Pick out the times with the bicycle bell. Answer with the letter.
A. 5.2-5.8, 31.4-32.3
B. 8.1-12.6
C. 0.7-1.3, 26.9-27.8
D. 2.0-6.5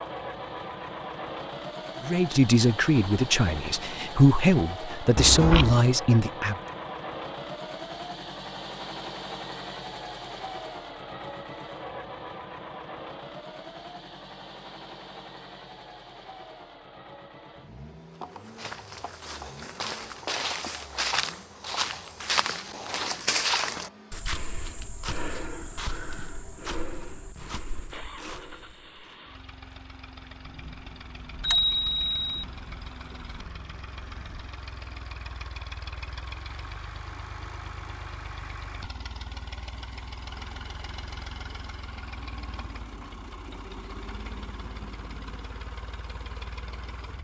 A.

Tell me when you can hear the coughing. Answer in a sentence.
The coughing can't be heard in this clip.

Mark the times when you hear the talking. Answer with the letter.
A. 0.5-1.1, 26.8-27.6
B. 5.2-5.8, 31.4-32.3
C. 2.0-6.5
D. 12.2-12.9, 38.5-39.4
C.